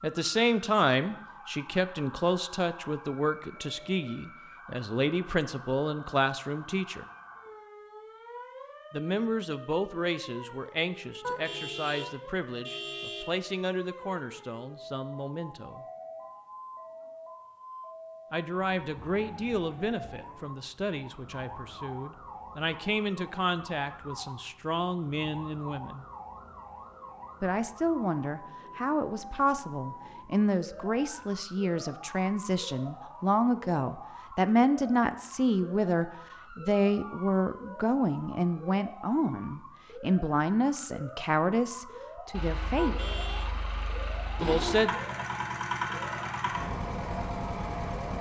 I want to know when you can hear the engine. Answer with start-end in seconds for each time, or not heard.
42.3-48.1.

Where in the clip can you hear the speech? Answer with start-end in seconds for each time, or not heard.
0.0-7.0, 8.9-15.8, 18.3-26.1, 27.4-43.0, 44.4-44.9.